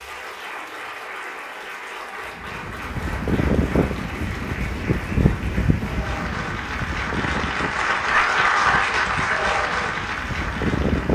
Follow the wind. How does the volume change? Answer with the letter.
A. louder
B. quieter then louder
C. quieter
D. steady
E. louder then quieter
B.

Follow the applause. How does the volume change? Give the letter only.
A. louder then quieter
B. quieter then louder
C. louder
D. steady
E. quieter
C.